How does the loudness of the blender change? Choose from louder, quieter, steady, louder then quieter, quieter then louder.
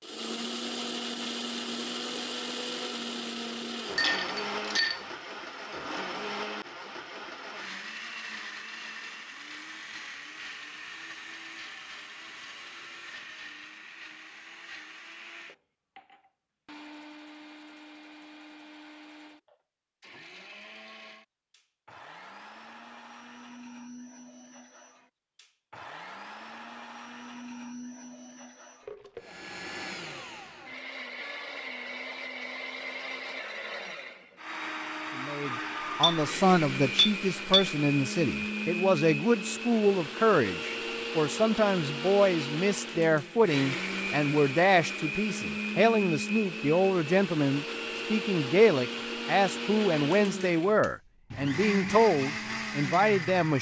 quieter then louder.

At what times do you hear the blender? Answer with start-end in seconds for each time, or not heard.
0.0-53.5.